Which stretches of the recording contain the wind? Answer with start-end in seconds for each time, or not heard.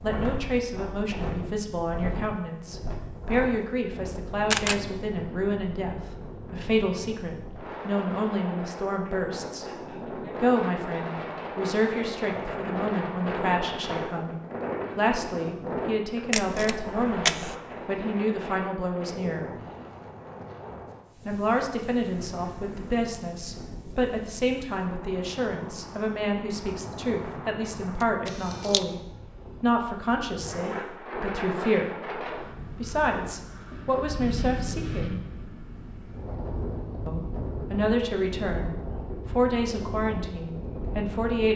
0.0-41.5.